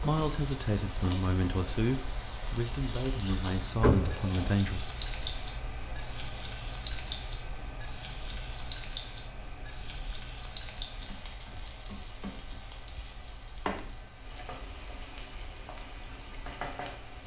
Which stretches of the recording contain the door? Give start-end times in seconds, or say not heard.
3.8-4.5.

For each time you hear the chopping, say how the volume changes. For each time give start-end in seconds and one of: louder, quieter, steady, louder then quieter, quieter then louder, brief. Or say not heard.
not heard.